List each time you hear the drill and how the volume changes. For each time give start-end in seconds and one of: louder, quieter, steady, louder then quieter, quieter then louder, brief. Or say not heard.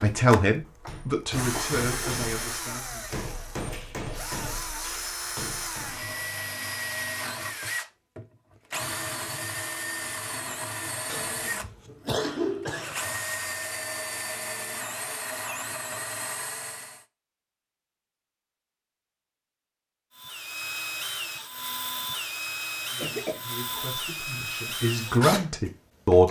0.0-17.1 steady
20.1-26.2 steady.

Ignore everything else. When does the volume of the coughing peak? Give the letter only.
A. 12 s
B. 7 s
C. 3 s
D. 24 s
A.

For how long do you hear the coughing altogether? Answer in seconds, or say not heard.
3 s.